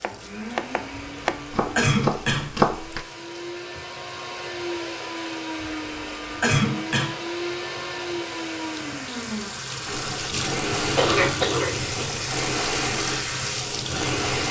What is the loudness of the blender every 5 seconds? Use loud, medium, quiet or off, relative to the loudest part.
medium, loud, loud.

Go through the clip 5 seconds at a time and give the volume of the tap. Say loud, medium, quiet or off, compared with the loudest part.
quiet, medium, loud.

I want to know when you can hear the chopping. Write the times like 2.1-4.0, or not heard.
0.0-3.0.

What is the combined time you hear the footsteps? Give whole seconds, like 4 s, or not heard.
not heard.